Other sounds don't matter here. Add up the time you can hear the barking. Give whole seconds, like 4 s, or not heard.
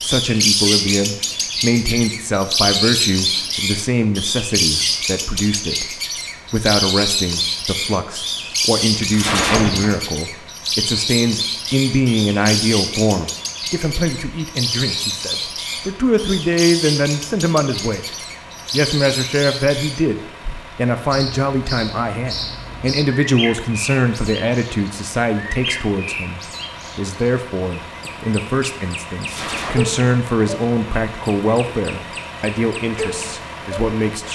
not heard.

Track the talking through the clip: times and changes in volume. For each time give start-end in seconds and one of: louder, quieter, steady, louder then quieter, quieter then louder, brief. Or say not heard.
0.0-34.2 steady.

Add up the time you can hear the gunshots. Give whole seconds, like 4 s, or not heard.
2 s.